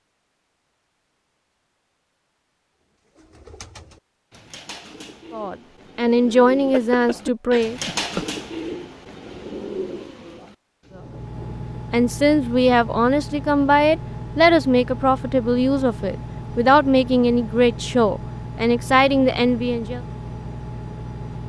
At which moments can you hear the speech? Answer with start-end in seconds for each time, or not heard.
5.3-7.8, 11.9-20.0.